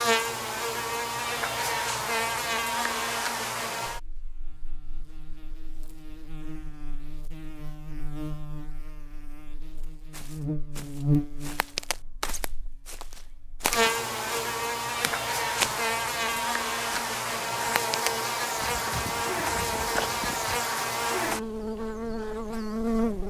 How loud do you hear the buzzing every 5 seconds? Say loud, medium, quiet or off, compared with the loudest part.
loud, quiet, loud, loud, loud.